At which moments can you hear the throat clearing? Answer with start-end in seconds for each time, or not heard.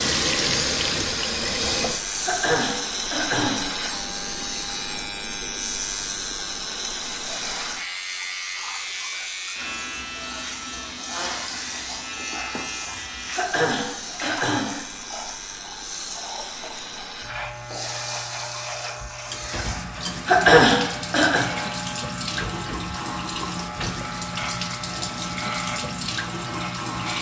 2.2-3.7, 13.3-14.8, 20.2-21.4.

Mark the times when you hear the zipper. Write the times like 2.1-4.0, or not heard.
not heard.